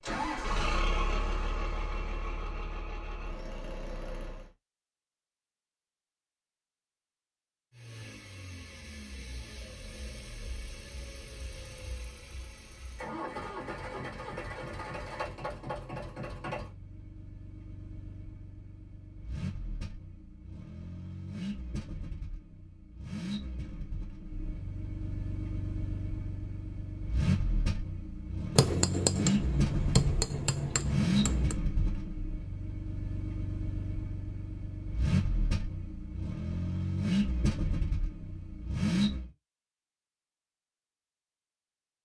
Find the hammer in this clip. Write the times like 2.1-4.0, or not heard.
28.6-31.6.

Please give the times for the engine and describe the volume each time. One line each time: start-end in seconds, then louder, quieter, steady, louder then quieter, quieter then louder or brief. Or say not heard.
0.0-4.5 quieter
7.7-39.3 louder.